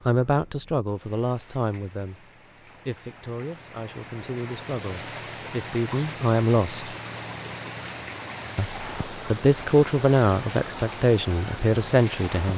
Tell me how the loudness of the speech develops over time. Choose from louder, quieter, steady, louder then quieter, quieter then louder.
quieter then louder.